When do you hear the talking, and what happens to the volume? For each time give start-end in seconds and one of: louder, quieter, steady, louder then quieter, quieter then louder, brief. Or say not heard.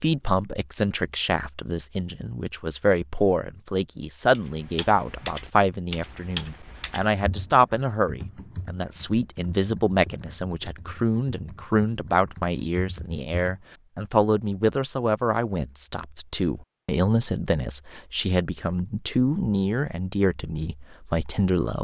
0.0-21.7 steady.